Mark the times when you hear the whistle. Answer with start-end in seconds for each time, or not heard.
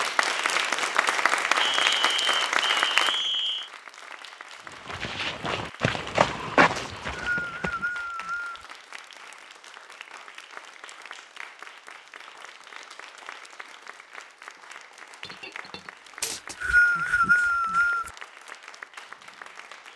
1.6-3.7, 6.8-8.7, 16.2-18.1.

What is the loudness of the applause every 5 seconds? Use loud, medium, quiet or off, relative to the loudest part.
loud, quiet, quiet, quiet.